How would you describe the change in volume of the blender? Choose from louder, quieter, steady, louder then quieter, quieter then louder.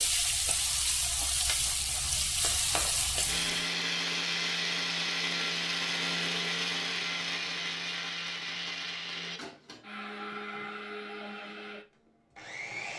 quieter.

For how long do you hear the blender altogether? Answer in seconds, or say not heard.
10 s.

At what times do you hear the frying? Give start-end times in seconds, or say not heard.
0.0-3.6.